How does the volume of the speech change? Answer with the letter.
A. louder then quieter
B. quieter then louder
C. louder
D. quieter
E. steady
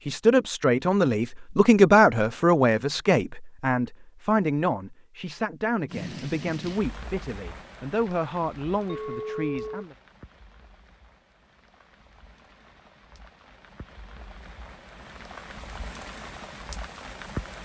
D.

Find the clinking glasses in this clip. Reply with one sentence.
You can hear the clinking glasses from 8.8 to 9.8 s.